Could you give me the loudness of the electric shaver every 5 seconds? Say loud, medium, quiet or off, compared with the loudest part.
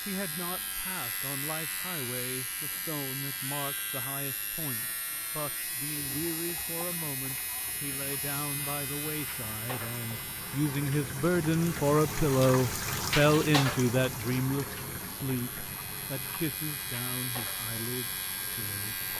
loud, loud, medium, loud.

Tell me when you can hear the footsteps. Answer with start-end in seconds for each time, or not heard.
not heard.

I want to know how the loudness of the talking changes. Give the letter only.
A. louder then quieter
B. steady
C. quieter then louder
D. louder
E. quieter
A.